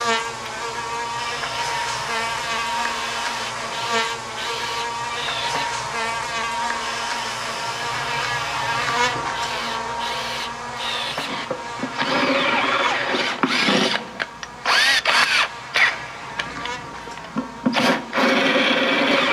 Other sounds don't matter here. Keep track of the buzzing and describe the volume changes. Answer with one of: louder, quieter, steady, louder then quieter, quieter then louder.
quieter.